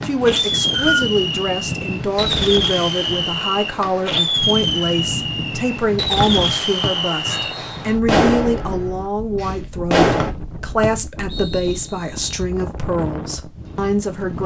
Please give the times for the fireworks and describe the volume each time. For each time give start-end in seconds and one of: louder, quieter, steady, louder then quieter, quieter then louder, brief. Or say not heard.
0.0-10.3 steady.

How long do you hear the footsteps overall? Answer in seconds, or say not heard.
not heard.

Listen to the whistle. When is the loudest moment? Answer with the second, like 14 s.
1 s.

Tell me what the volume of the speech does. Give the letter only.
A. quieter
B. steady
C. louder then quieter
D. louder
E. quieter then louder
B.